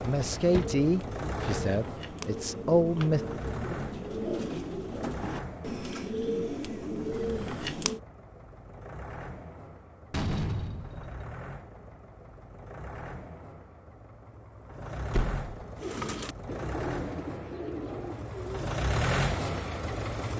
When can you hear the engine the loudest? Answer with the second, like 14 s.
19 s.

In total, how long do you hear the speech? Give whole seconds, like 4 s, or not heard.
3 s.